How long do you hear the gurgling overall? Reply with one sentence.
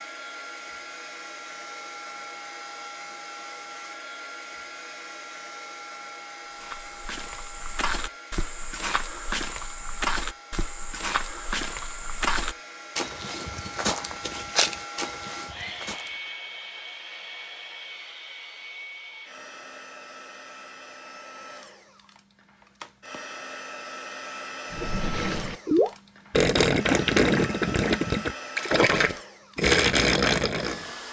The gurgling can be heard for 6 seconds in total.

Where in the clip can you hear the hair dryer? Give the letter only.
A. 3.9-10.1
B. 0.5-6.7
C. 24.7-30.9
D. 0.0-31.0
D.